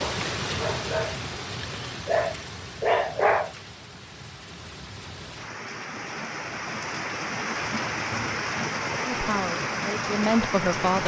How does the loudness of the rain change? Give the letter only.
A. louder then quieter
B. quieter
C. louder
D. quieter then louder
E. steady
D.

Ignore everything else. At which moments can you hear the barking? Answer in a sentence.
You can hear the barking from 0.0 to 3.5 s.